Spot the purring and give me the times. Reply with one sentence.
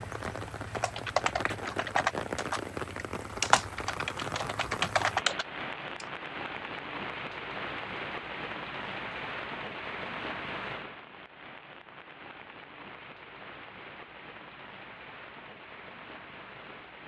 The purring can't be heard in this clip.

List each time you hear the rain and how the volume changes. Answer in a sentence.
You can hear the rain from 0.0 to 17.0 s, getting quieter.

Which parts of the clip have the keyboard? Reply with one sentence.
You can hear the keyboard from 0.8 to 6.0 s.